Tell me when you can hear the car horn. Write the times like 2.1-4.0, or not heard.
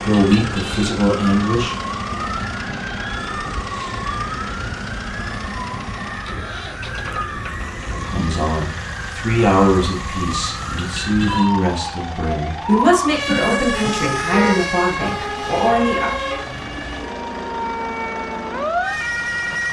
0.1-0.9, 10.8-11.5, 13.2-14.6.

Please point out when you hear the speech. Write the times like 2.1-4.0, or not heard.
0.0-1.8, 7.9-16.1.